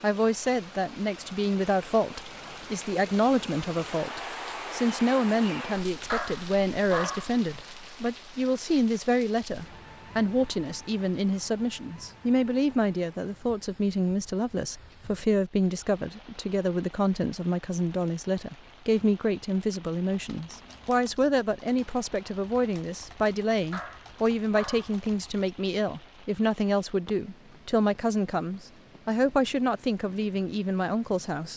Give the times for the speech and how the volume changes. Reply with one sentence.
You can hear the speech from 0.0 to 31.5 s, at a steady volume.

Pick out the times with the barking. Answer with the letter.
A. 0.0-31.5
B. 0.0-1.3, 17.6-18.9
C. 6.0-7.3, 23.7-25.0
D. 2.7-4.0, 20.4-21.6
C.